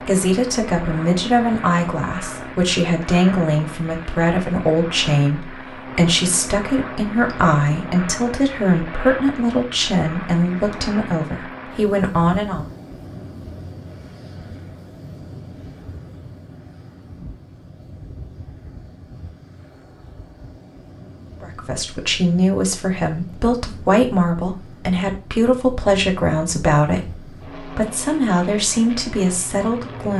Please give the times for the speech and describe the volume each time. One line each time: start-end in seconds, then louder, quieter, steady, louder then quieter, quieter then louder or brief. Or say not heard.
0.1-12.7 steady
21.4-30.1 steady.